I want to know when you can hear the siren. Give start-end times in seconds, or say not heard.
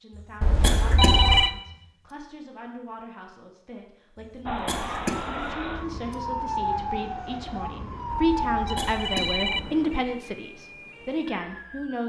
4.5-12.0.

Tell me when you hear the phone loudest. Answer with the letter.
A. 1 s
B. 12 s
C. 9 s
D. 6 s
A.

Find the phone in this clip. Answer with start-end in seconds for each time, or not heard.
0.4-1.5, 8.1-9.8.